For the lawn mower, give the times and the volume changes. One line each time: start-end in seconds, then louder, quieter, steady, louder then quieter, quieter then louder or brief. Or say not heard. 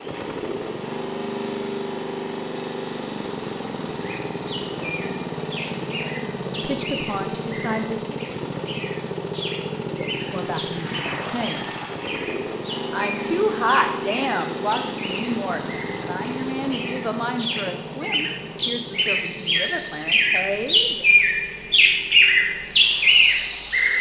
0.0-23.9 quieter.